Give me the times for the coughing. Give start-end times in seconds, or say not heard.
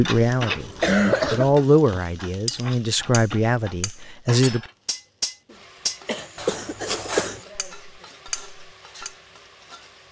0.5-1.6, 6.0-7.4.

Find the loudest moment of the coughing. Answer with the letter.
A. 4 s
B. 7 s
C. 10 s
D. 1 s
D.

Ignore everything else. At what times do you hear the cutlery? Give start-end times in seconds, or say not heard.
1.9-9.2.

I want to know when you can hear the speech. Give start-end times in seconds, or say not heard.
0.0-4.6.